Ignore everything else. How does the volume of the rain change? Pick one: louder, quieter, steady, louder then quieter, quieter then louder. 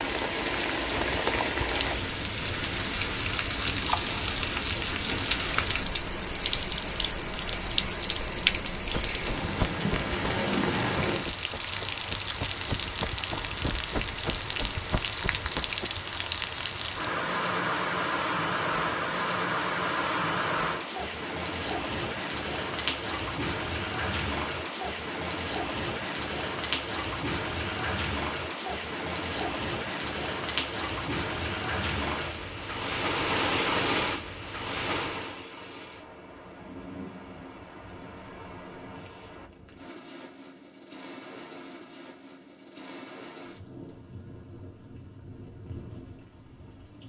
quieter.